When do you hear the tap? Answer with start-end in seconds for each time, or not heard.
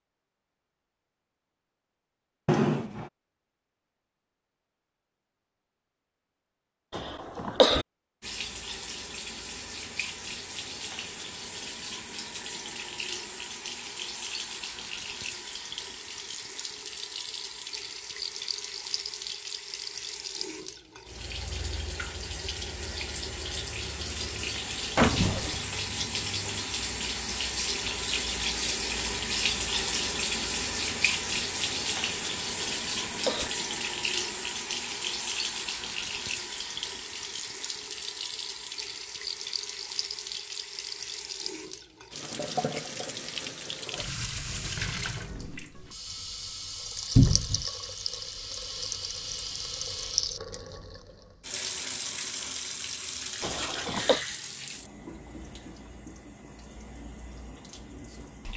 8.2-58.5.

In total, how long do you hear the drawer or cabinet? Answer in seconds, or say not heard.
2 s.